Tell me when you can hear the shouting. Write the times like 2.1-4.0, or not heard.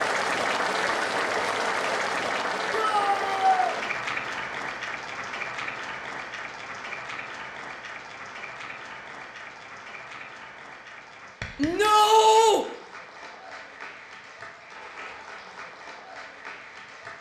2.7-3.8, 11.6-12.7.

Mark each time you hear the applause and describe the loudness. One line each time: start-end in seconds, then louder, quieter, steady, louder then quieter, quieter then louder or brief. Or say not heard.
0.0-17.1 quieter.